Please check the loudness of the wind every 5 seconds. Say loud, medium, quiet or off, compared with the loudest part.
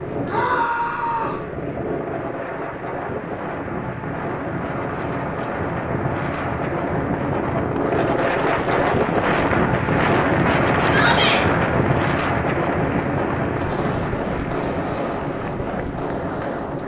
medium, loud, loud, medium.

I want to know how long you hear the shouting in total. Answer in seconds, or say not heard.
2 s.